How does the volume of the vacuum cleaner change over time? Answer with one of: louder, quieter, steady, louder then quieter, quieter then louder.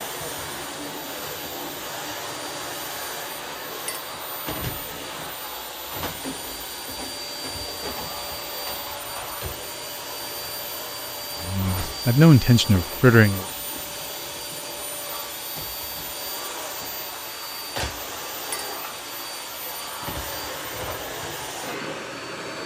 steady.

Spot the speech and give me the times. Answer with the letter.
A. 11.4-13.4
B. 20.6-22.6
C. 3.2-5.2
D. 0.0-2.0
A.